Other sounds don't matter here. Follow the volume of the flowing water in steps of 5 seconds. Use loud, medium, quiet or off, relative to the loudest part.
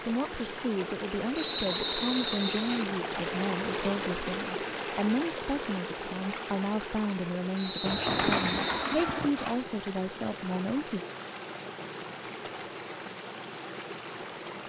loud, loud, medium.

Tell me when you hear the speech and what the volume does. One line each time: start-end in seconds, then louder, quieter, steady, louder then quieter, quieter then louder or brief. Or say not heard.
0.1-11.0 steady.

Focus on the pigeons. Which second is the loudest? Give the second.
8 s.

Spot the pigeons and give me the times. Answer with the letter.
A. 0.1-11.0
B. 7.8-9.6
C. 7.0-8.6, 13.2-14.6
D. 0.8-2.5
B.